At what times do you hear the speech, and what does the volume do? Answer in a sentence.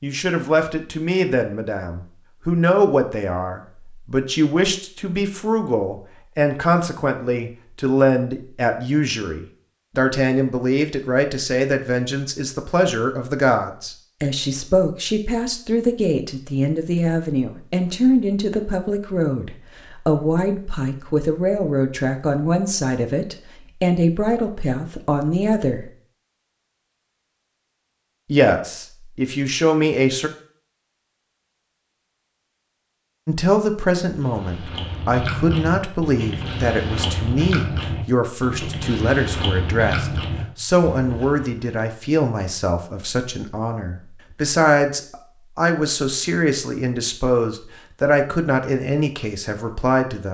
The speech can be heard from 0.0 to 25.9 s, at a steady volume; briefly from 28.2 to 30.3 s; and from 33.2 to 50.2 s, at a steady volume.